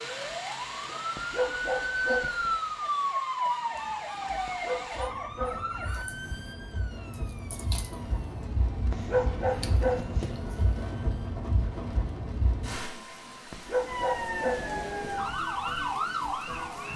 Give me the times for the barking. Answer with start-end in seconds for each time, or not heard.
1.1-2.5, 4.5-5.9, 8.9-10.3, 13.5-14.8.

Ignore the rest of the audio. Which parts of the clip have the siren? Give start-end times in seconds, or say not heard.
0.0-11.3, 13.8-16.9.